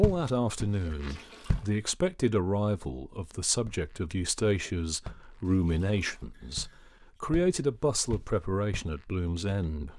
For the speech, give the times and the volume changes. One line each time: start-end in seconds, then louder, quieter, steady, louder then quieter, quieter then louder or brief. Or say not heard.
0.0-9.9 steady.